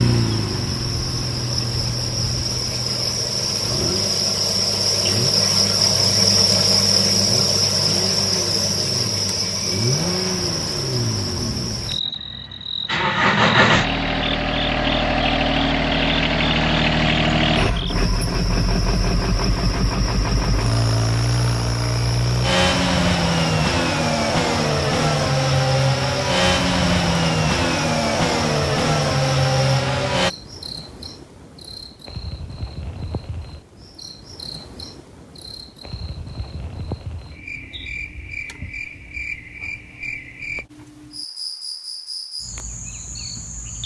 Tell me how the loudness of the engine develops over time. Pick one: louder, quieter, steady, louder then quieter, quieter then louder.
louder.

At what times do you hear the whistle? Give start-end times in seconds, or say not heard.
not heard.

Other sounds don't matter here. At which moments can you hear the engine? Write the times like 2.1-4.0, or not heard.
0.0-30.3.